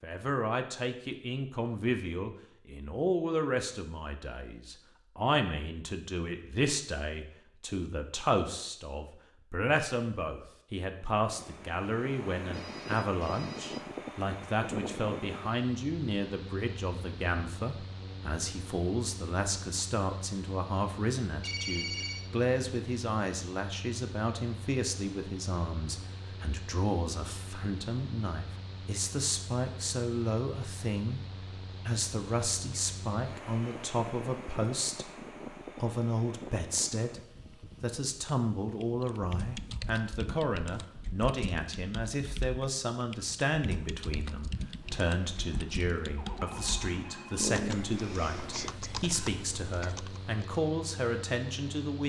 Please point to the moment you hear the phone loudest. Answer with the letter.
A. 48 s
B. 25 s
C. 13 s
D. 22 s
D.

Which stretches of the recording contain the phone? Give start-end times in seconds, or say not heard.
12.5-13.9, 21.4-22.2, 46.1-47.5.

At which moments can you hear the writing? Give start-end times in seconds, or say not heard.
not heard.